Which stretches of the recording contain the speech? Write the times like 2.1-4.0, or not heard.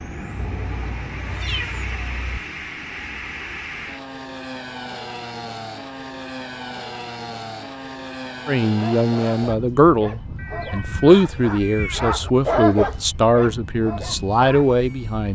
8.4-15.3.